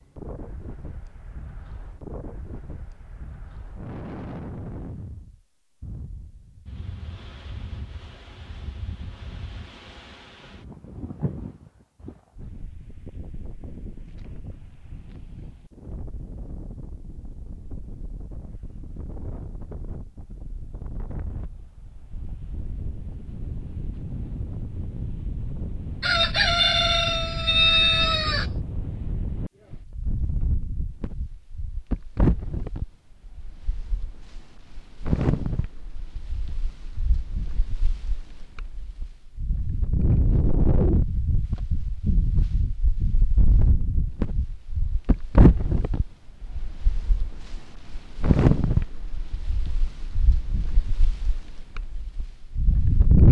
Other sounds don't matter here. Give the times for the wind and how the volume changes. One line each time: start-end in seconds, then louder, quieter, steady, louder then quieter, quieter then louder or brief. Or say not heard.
0.0-53.2 louder.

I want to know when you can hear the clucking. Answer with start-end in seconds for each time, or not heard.
26.0-28.4.